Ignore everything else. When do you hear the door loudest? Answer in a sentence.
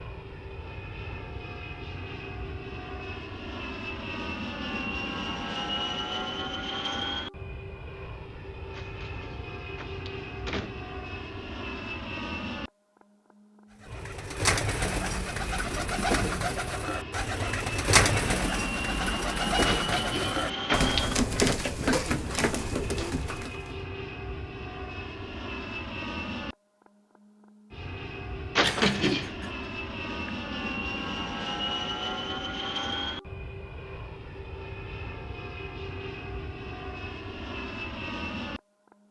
The volume of the door peaks at 29 seconds.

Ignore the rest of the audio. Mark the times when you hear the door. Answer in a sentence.
You can hear the door from 8.7 to 10.8 s, from 19.6 to 21.1 s and from 28.6 to 29.4 s.